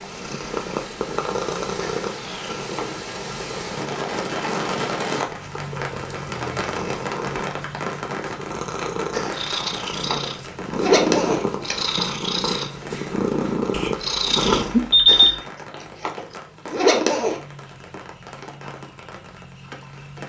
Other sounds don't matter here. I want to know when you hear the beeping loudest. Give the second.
15 s.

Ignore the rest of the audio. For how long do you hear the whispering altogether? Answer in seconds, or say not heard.
not heard.